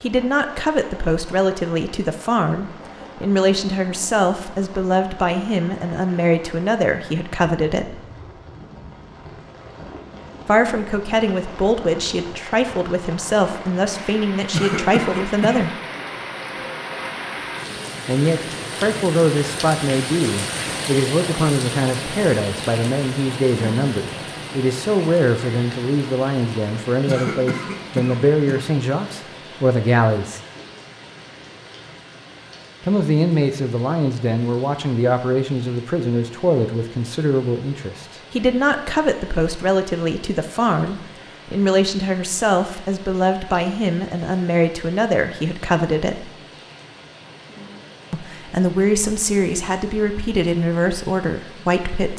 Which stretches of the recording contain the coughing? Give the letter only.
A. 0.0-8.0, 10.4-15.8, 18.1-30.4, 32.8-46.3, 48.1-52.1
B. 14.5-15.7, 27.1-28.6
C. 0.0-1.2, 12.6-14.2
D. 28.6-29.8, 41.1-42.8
B.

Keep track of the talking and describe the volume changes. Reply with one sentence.
The volume of the talking stays about the same.